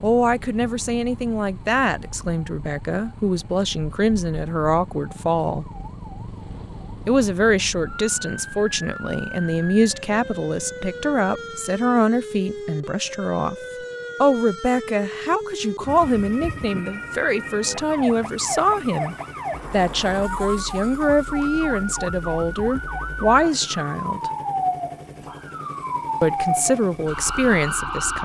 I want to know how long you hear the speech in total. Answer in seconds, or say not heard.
24 s.